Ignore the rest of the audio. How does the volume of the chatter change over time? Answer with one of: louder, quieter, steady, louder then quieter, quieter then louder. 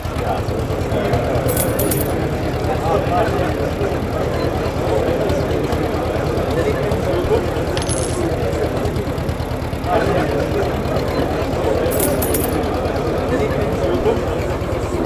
steady.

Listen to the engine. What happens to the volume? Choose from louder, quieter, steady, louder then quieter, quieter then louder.
steady.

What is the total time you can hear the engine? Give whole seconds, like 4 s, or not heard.
15 s.